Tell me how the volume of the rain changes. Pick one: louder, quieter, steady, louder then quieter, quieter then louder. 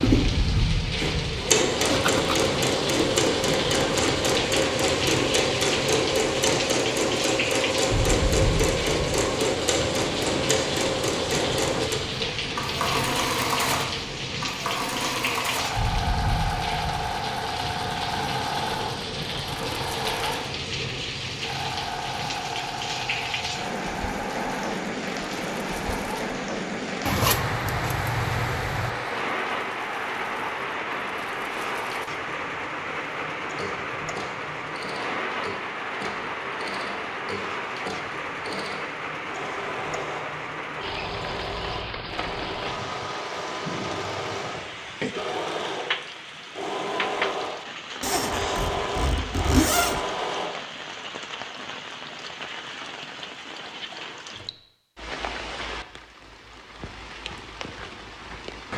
quieter.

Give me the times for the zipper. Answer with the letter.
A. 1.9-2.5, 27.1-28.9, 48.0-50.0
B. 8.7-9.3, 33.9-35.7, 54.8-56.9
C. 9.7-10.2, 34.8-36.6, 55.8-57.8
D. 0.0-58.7
A.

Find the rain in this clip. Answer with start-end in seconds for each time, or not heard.
0.0-58.7.